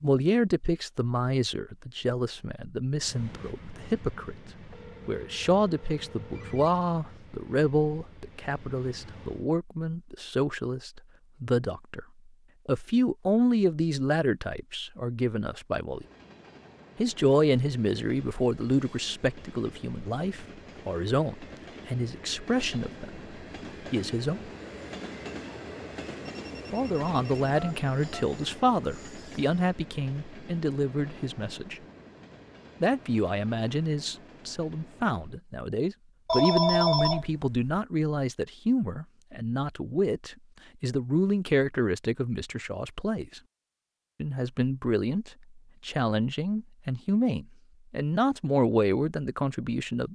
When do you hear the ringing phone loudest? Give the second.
37 s.